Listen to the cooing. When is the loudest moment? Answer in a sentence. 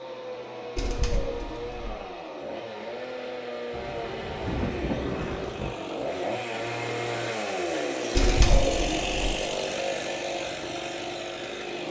The volume of the cooing peaks at 9 seconds.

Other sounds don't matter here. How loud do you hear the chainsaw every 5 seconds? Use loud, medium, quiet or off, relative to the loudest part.
medium, loud, loud.